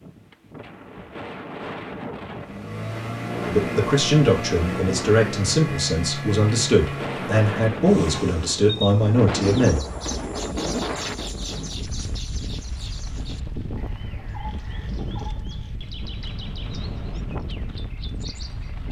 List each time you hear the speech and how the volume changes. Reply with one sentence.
You can hear the speech from 3.5 to 9.8 s, at a steady volume.